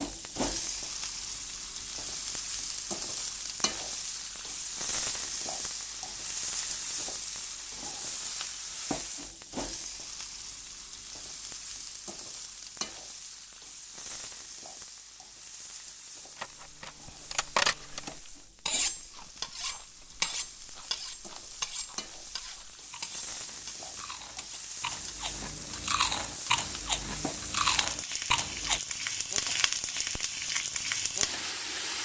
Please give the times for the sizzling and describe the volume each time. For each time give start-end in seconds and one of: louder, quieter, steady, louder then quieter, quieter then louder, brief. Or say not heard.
0.0-31.9 quieter then louder.